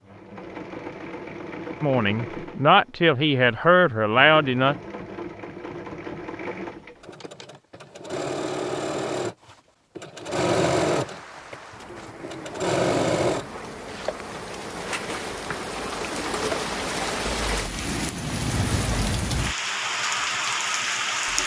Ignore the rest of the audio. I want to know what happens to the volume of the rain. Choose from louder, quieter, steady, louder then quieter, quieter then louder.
louder.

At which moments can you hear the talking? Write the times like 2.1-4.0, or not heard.
1.8-4.8.